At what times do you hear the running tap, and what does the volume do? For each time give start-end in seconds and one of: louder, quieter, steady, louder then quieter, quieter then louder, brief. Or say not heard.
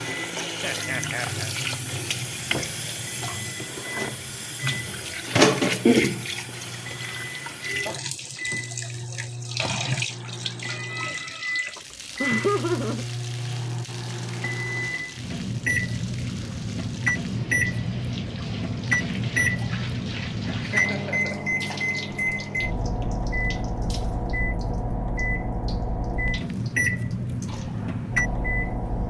0.0-29.0 quieter.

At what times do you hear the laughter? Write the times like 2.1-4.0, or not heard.
0.6-1.5, 11.8-13.1, 20.6-21.4.